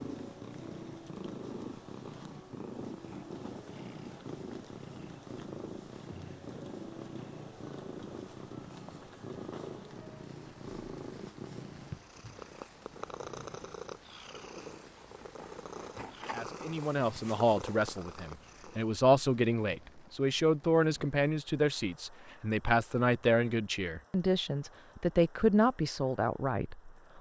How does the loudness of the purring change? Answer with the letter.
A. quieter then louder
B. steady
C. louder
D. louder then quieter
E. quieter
B.